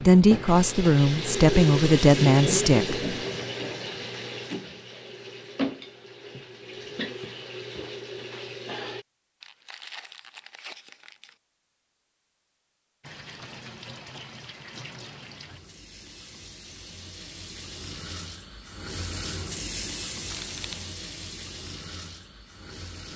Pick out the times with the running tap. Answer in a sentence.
You can hear the running tap from 0.0 to 9.1 s and from 13.0 to 23.1 s.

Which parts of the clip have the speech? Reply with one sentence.
You can hear the speech from 0.1 to 3.1 s.